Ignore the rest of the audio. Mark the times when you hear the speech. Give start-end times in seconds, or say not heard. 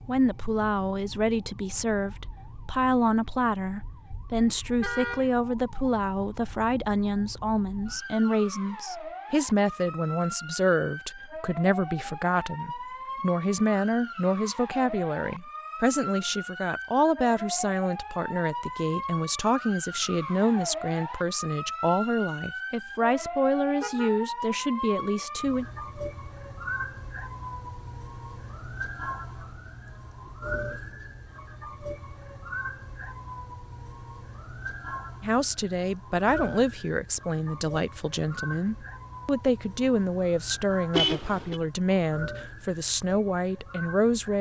0.1-25.6, 35.2-44.3.